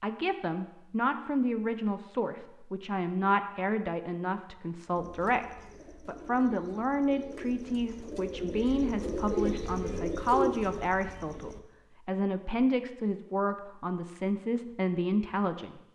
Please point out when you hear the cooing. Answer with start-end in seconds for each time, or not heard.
5.0-11.6.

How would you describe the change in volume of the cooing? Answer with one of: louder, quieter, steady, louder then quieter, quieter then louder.
louder.